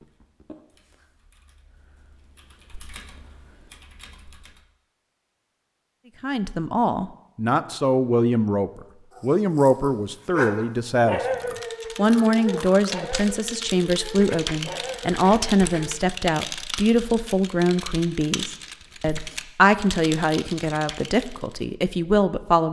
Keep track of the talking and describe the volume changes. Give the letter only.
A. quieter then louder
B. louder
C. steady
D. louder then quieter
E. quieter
C.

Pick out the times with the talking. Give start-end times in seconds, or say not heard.
6.2-22.6.